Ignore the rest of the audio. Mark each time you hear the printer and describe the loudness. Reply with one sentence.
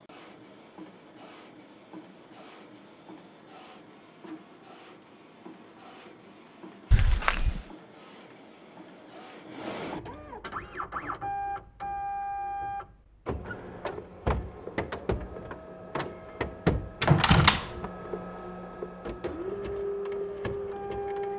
You can hear the printer from 0.0 to 21.3 s, getting louder.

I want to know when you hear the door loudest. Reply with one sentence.
The loudest moment of the door is at 17 seconds.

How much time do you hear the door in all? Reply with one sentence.
You can hear the door for 2 seconds altogether.